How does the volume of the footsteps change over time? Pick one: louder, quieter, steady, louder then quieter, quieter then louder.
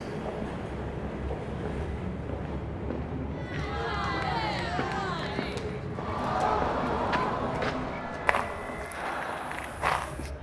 louder.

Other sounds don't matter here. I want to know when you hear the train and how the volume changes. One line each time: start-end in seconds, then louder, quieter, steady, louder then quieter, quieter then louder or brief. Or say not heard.
0.0-10.3 quieter.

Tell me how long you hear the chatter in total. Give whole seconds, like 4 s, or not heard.
7 s.